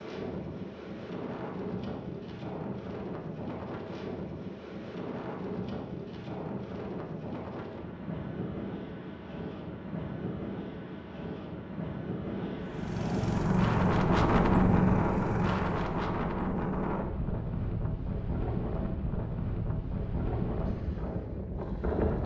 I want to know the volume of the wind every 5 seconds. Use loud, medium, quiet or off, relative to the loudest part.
medium, medium, loud, loud, loud.